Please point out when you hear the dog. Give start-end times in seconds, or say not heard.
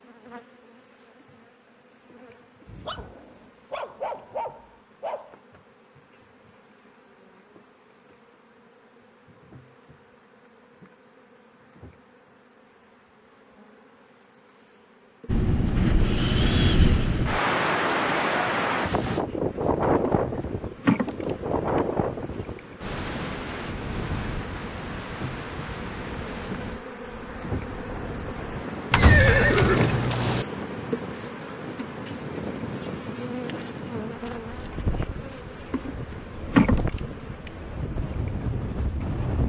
2.6-5.3.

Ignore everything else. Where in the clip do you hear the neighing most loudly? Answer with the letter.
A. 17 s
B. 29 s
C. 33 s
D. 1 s
B.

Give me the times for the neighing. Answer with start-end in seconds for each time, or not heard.
28.9-30.4.